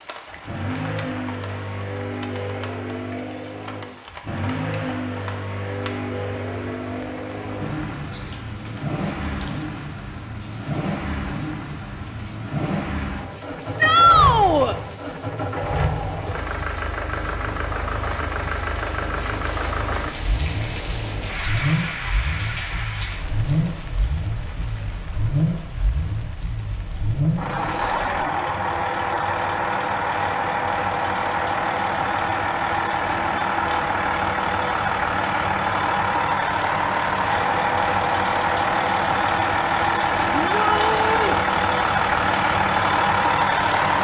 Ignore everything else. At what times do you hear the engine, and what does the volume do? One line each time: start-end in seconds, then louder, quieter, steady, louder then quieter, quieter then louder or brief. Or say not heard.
0.3-43.9 louder.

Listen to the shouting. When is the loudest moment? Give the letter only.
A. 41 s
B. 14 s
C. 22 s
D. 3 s
B.